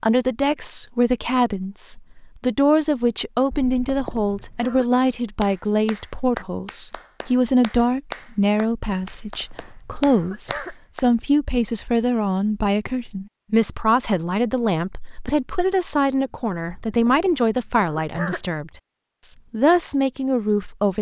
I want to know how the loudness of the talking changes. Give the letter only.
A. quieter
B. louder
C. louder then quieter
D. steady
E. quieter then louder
D.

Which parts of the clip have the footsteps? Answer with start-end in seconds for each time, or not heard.
not heard.